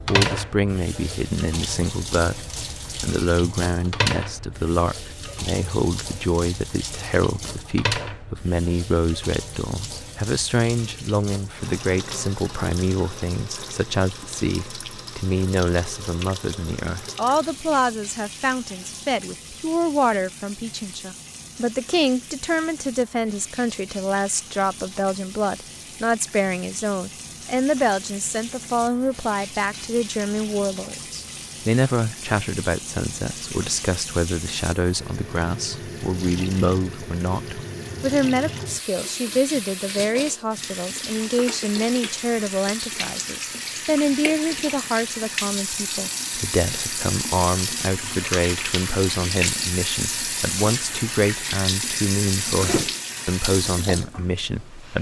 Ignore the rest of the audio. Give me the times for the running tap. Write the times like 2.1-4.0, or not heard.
0.0-54.9.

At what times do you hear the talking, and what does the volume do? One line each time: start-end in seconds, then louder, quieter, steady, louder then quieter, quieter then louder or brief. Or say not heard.
0.1-54.9 steady.